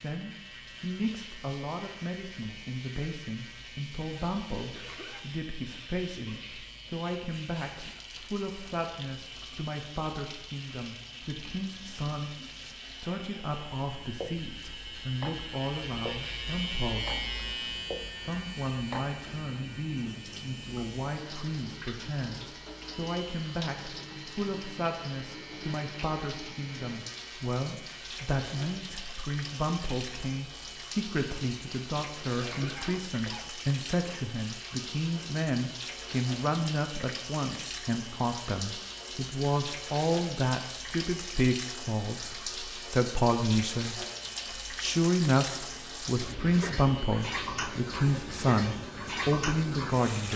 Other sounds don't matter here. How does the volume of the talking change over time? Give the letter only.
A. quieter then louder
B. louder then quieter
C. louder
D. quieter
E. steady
C.